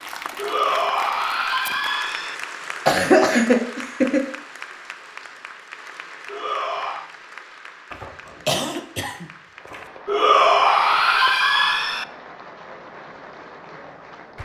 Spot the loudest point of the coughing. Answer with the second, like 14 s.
3 s.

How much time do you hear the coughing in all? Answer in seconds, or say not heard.
3 s.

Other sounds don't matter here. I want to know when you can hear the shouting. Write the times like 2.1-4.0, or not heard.
0.3-2.4, 6.2-7.1, 10.1-12.1.